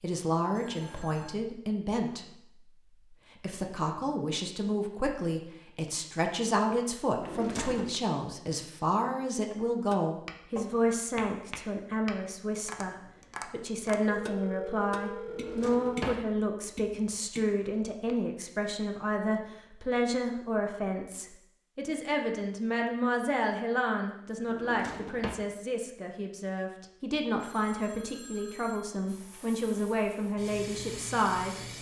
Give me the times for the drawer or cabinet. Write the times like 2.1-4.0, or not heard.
7.2-8.0, 15.2-16.2, 24.4-25.4.